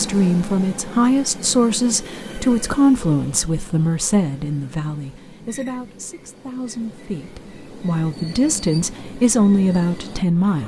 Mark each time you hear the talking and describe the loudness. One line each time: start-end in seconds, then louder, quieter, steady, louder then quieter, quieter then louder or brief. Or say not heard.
0.0-10.6 quieter then louder.